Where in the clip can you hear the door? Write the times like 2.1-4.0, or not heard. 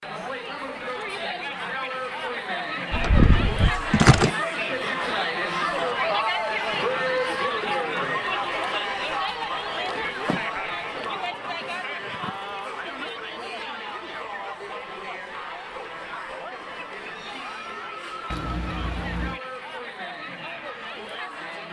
not heard.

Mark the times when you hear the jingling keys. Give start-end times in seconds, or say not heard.
2.9-4.3, 10.2-12.6, 18.3-19.4.